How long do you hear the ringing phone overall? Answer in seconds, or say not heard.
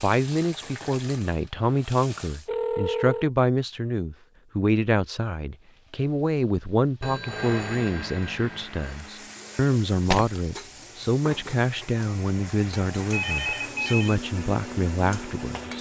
4 s.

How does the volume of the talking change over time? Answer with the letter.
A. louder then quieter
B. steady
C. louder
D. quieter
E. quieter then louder
B.